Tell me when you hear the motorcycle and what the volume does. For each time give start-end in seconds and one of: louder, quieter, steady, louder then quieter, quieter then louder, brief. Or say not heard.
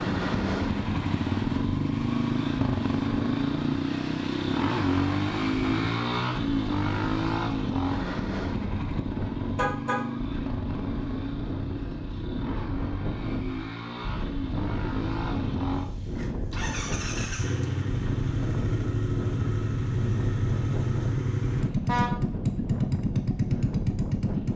0.0-24.5 quieter then louder.